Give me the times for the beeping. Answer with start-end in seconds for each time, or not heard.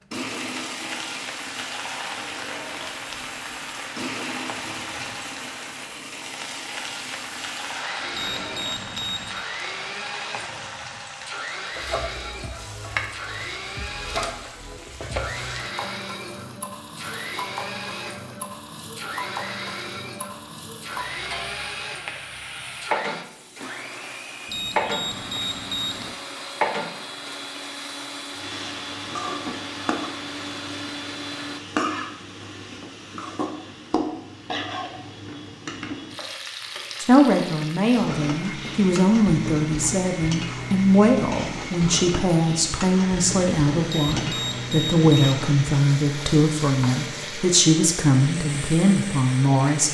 8.1-9.4, 24.4-26.1, 43.9-45.5.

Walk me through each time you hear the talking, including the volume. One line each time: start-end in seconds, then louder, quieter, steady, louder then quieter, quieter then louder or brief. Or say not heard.
37.0-49.8 steady.